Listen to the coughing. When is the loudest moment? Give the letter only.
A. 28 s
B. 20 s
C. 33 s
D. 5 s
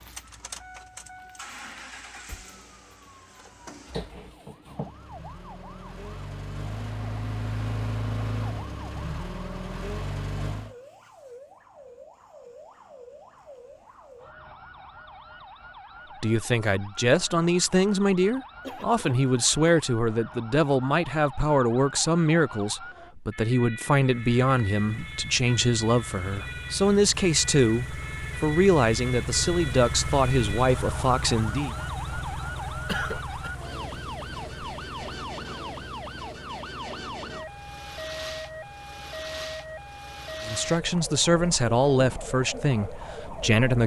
C.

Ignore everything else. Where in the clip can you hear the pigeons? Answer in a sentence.
The pigeons can't be heard in this clip.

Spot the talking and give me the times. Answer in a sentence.
The talking can be heard from 16.2 to 31.7 s and from 40.5 to 43.8 s.